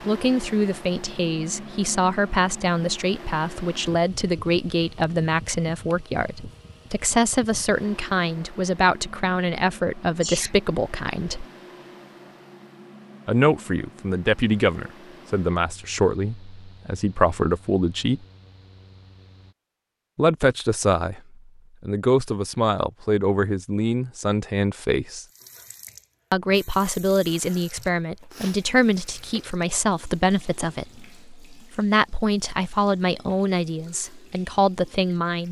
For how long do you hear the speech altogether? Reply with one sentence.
You can hear the speech for 30 seconds altogether.